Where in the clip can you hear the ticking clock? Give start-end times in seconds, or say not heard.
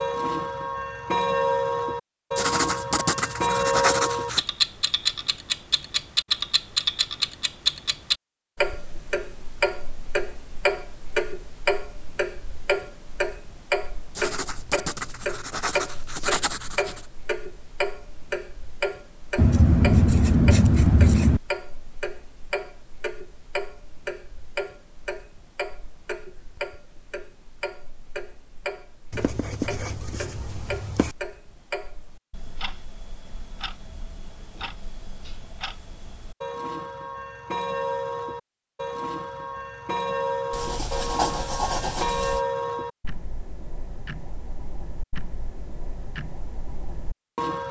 0.0-47.6.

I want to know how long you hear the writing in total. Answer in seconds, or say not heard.
11 s.